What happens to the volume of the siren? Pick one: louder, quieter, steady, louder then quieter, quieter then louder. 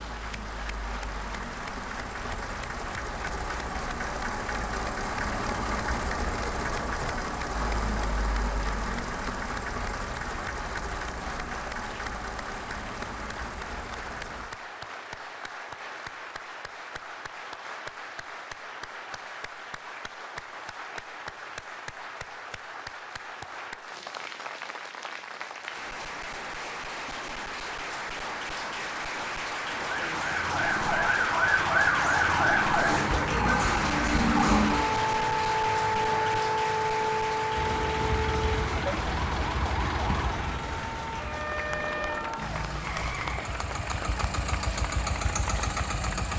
quieter.